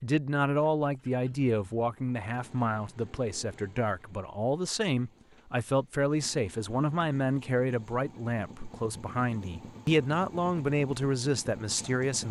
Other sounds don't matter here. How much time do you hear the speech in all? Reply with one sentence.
You can hear the speech for 12 seconds altogether.